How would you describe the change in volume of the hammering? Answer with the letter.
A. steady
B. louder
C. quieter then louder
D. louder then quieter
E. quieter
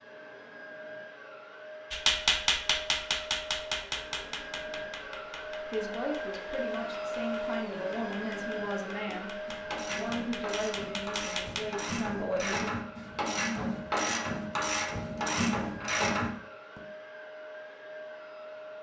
C.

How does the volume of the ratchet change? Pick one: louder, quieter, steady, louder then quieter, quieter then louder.
louder.